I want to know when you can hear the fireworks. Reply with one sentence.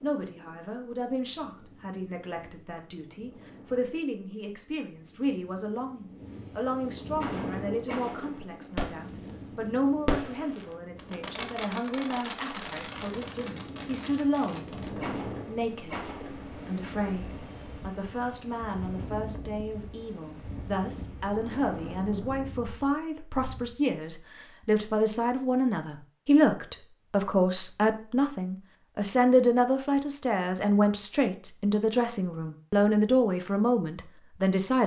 The fireworks can be heard from 7.2 to 9.3 s and from 10.1 to 16.4 s.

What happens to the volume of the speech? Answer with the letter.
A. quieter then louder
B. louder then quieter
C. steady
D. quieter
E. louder
E.